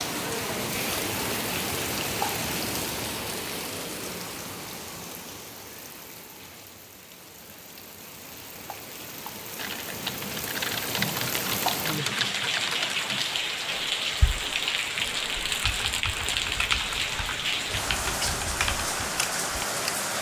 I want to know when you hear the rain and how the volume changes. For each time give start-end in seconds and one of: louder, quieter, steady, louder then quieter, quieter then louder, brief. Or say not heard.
0.0-20.1 quieter then louder.